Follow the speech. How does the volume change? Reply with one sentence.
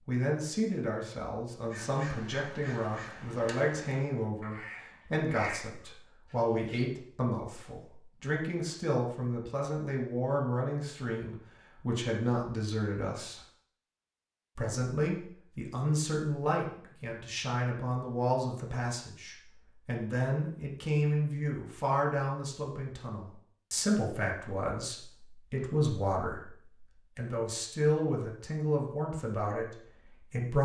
The loudness of the speech stays about the same.